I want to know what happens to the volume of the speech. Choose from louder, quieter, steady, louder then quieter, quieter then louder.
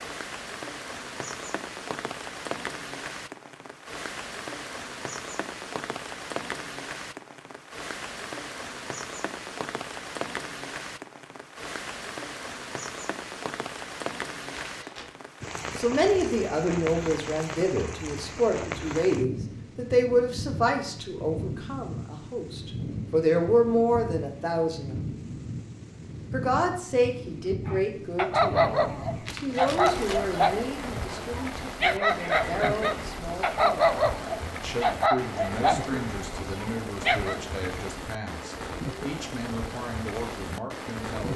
quieter.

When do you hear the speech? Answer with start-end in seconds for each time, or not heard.
15.8-25.0, 26.3-33.9, 34.6-41.3.